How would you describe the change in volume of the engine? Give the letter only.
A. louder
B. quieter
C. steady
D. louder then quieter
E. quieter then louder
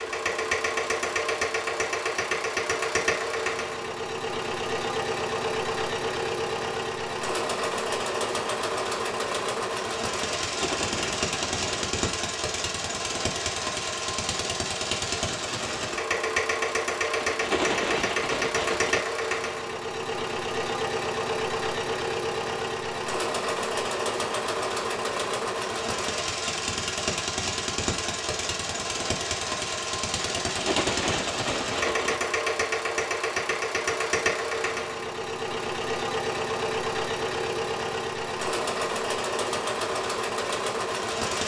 C.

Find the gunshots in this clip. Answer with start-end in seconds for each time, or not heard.
10.3-11.9, 17.0-19.0, 30.2-32.2.